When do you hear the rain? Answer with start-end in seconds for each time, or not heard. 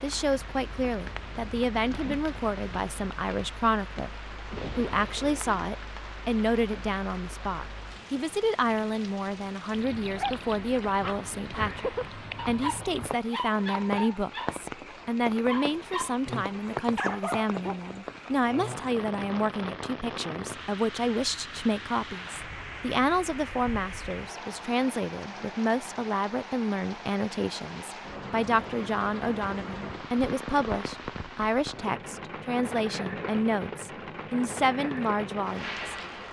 0.0-36.2.